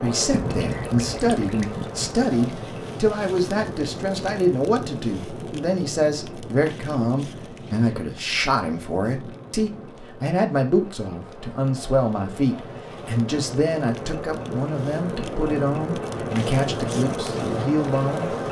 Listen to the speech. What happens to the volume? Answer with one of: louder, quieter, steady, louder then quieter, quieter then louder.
steady.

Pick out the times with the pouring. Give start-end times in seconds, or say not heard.
0.3-2.2.